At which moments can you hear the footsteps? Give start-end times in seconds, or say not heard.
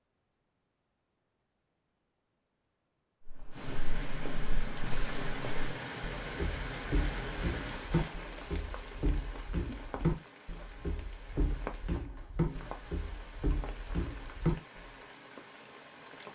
3.2-14.8.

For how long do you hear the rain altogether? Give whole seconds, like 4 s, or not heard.
13 s.